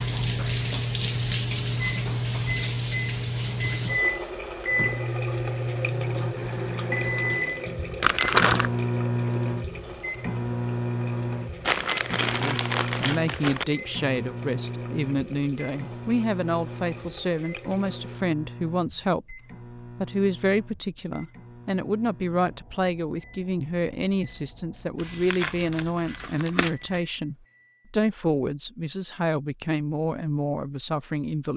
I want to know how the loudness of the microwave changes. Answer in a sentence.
The volume of the microwave goes down.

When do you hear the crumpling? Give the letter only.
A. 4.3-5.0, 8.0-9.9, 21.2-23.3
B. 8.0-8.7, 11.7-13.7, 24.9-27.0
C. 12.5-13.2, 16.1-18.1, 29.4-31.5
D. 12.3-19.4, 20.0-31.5
B.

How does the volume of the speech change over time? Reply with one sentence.
The loudness of the speech stays about the same.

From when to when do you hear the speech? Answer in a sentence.
You can hear the speech from 12.3 to 19.4 s and from 20.0 to 31.5 s.